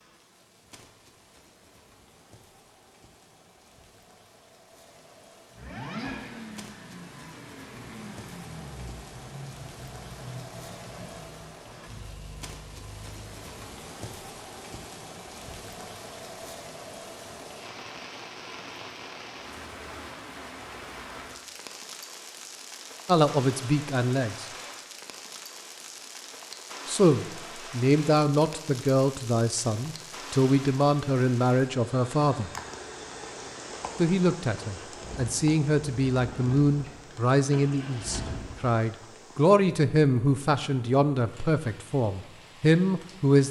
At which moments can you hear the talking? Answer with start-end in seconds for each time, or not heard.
23.1-24.4, 26.9-32.5, 34.0-43.4.